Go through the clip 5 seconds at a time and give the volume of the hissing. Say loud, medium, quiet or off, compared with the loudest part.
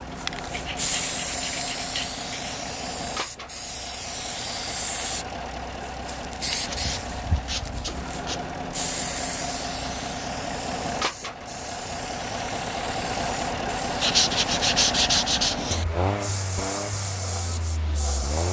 loud, loud, medium, loud.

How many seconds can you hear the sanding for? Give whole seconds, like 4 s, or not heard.
6 s.